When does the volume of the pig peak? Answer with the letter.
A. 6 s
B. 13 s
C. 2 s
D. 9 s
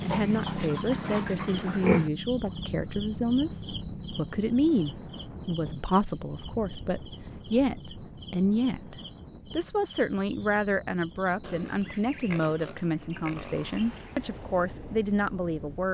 C.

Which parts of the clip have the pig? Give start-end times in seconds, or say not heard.
0.1-2.1, 11.4-14.2.